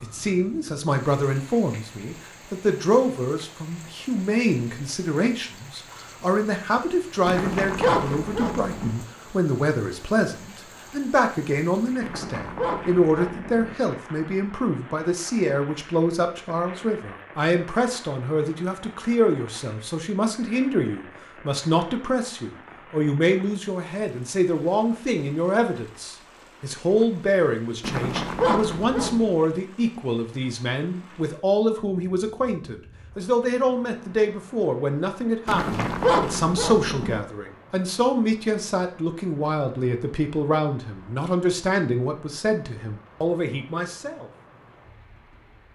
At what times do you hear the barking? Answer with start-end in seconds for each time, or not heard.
7.2-8.9, 12.0-13.8, 27.8-29.3, 35.5-37.2.